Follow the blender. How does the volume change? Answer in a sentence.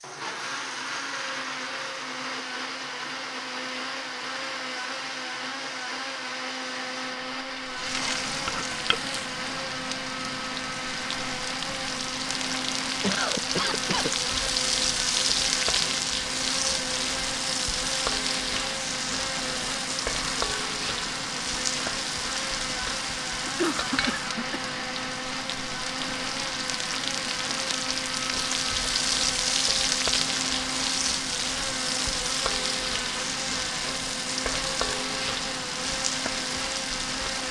The volume of the blender stays about the same.